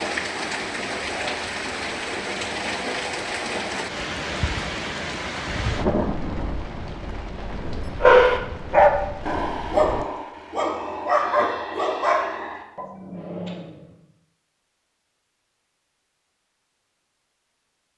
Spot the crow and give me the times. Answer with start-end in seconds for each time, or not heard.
not heard.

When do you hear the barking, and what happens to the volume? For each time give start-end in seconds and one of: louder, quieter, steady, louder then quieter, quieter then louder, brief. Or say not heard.
8.0-13.8 quieter.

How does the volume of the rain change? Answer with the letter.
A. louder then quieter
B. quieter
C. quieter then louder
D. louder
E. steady
B.